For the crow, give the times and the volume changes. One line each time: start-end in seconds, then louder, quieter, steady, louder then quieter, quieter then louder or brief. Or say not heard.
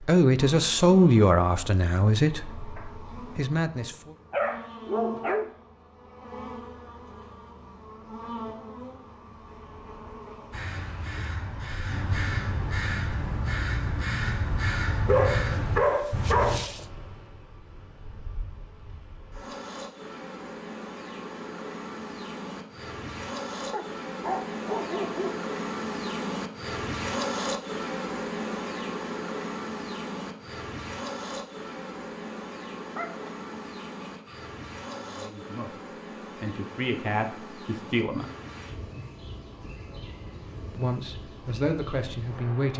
10.5-16.6 louder.